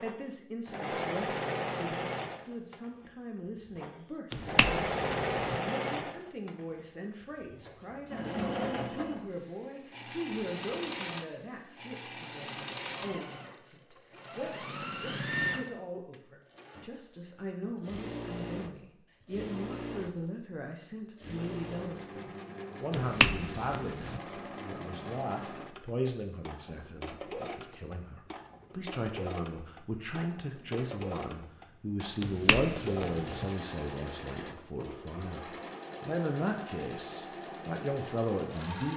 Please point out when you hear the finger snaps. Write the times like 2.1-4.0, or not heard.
4.3-5.5, 22.9-24.2, 32.2-33.5.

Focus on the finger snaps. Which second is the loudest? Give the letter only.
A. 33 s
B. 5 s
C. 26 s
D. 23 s
D.